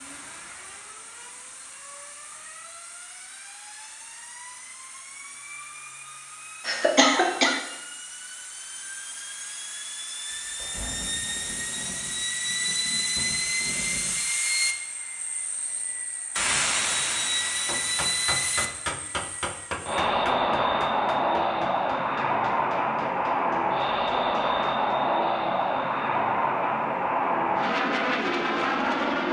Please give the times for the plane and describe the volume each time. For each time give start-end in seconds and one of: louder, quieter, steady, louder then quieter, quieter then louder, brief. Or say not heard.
0.0-29.2 louder.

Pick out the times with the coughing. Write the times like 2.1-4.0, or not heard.
6.7-7.6.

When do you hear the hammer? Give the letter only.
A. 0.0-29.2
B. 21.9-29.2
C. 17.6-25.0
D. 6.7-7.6
C.